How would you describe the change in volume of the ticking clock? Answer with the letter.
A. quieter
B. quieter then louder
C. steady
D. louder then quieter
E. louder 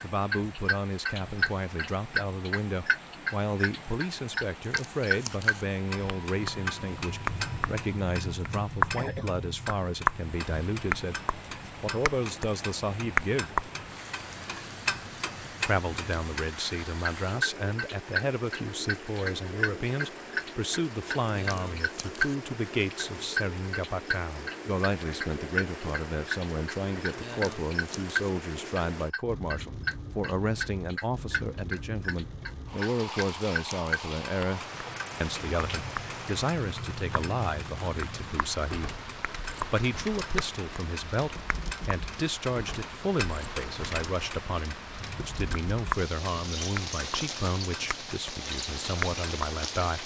A.